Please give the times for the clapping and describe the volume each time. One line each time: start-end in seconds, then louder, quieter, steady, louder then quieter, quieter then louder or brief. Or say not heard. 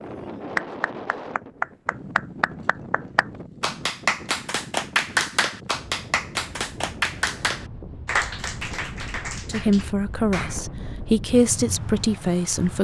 0.6-10.6 quieter.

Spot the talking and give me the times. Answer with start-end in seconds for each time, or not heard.
9.4-12.7.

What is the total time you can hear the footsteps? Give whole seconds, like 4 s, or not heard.
not heard.